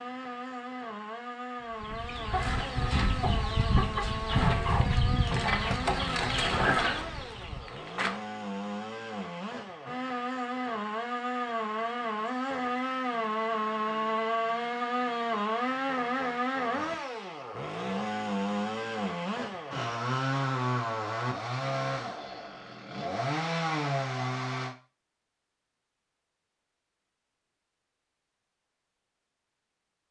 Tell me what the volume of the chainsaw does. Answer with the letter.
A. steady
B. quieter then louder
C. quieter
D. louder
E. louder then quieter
D.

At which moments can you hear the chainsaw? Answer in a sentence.
You can hear the chainsaw from 0.0 to 24.8 s.